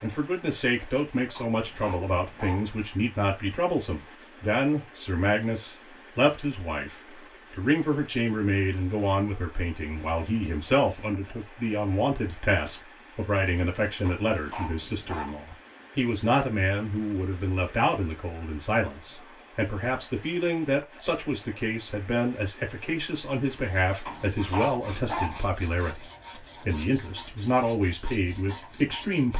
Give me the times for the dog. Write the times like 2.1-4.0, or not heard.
1.4-2.7, 14.0-15.4, 24.1-25.4.